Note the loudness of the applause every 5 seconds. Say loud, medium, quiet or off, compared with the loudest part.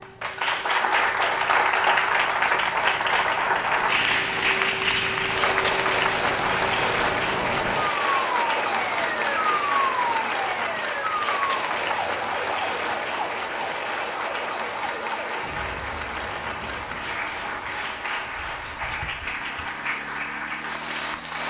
loud, loud, medium, medium, medium.